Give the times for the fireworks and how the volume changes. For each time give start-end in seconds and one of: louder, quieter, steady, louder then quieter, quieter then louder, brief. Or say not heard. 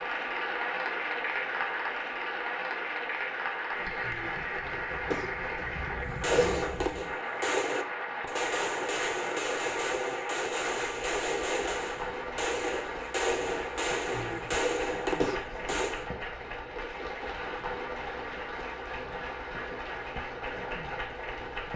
6.0-16.1 steady.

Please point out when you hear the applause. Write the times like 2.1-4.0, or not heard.
0.0-21.7.